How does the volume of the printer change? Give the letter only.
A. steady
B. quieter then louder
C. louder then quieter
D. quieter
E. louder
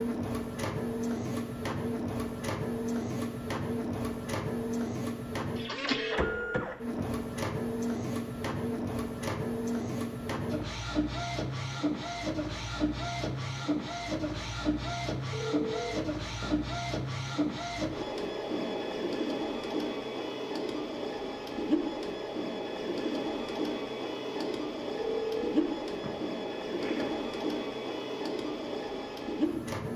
A.